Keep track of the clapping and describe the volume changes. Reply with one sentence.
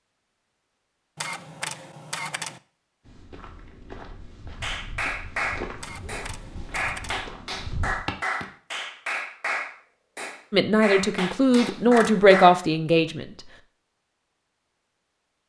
The volume of the clapping stays about the same.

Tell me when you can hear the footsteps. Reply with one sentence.
You can hear the footsteps from 3.0 to 8.4 s.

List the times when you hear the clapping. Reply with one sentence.
The clapping can be heard from 4.6 to 12.7 s.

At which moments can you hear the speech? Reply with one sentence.
You can hear the speech from 10.5 to 13.2 s.